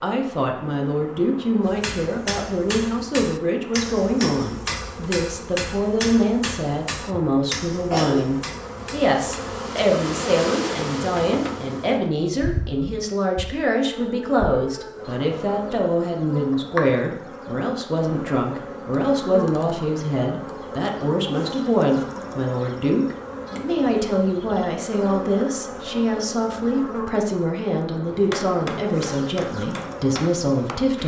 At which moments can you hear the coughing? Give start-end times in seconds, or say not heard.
7.2-8.3.